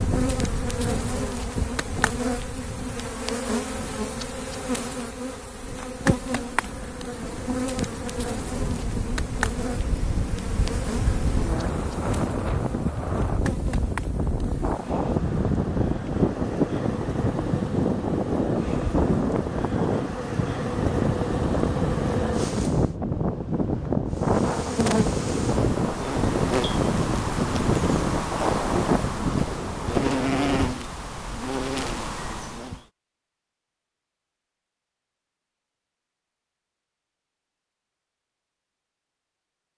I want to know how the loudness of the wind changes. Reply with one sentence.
The volume of the wind goes up.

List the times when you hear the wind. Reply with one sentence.
The wind can be heard from 0.0 to 30.8 s.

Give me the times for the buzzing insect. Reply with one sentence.
You can hear the buzzing insect from 0.0 to 22.9 s and from 24.1 to 32.8 s.